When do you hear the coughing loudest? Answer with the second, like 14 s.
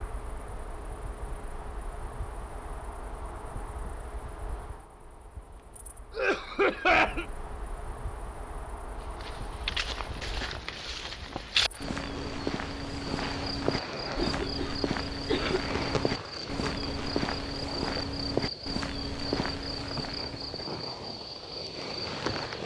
7 s.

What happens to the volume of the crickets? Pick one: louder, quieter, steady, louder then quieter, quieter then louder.
louder.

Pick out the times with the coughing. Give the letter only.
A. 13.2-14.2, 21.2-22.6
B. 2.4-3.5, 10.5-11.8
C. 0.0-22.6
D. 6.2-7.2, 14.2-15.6
D.